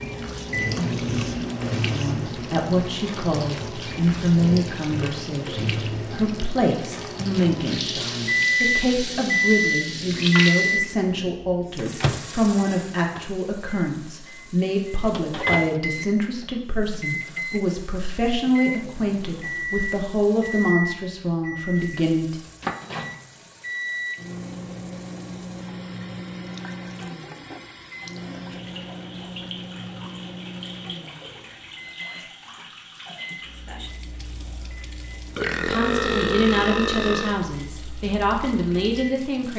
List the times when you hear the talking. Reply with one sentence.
You can hear the talking from 1.9 to 22.4 s and from 35.5 to 39.5 s.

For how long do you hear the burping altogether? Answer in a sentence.
The burping can be heard for 2 seconds in total.